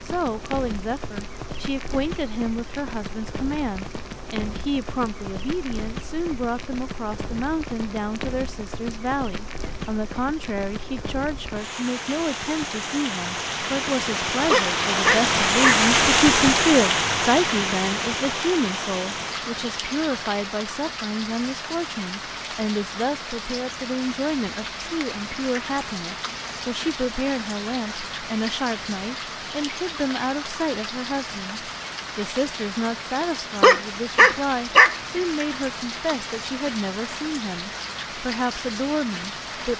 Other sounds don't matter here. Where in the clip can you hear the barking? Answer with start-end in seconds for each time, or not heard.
14.5-15.8, 33.6-35.0.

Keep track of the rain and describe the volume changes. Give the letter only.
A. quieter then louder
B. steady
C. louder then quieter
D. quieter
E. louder
C.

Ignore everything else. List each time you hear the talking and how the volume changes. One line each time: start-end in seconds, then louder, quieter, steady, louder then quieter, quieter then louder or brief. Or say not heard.
0.0-39.7 steady.